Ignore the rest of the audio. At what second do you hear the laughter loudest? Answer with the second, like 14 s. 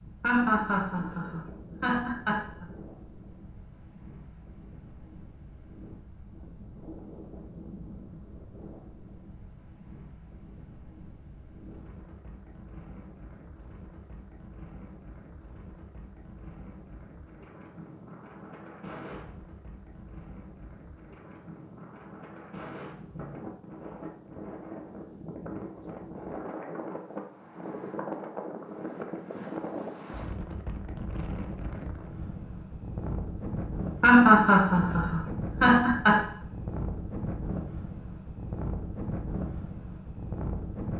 34 s.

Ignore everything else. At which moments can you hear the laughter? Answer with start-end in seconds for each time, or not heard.
0.2-2.6, 34.0-36.2.